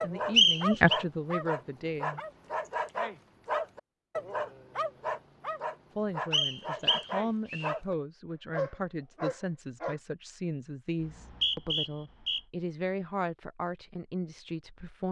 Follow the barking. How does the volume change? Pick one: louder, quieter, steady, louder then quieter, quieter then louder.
steady.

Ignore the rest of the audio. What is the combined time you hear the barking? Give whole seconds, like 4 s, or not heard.
10 s.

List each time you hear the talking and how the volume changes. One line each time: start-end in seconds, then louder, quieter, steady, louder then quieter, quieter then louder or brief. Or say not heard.
0.0-2.2 brief
6.0-15.0 steady.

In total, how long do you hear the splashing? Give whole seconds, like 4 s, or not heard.
not heard.